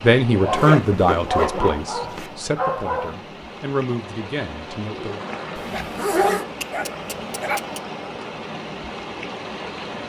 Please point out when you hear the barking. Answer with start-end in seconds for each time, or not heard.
0.4-3.2, 5.7-7.8.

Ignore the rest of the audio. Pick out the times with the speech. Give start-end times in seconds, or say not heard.
0.0-5.2.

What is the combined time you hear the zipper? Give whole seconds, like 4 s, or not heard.
3 s.